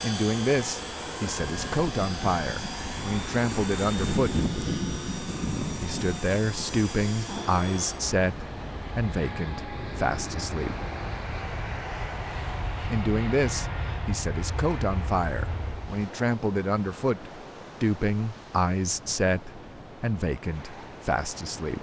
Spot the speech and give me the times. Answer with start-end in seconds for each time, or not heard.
0.0-4.4, 5.8-10.8, 12.9-21.7.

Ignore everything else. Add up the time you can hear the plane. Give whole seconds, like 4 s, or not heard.
16 s.